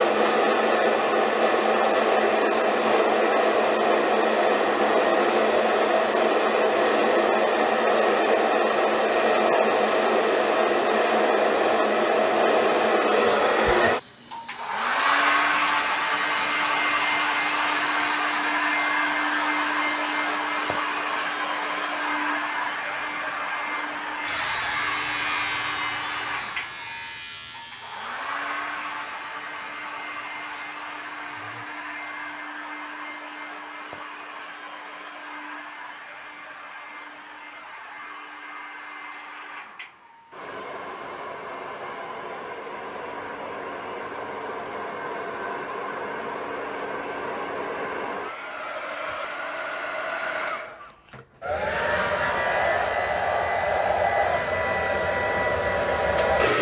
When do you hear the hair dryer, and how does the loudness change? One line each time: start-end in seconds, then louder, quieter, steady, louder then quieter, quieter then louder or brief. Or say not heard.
0.0-56.5 quieter then louder.